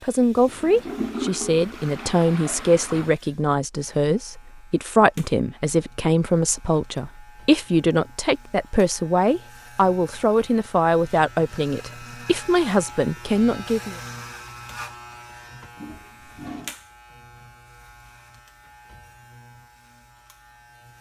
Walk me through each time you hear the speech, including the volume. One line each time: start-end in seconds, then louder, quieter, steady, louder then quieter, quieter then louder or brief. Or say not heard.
0.0-13.9 steady.